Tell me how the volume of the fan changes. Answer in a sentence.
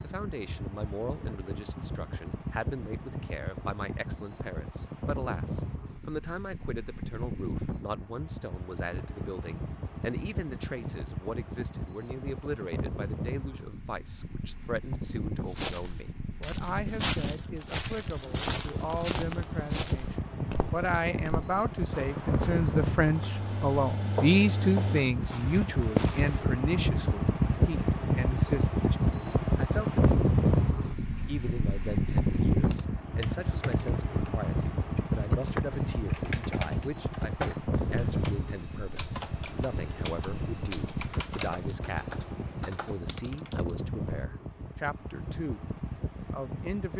The volume of the fan goes up, then down.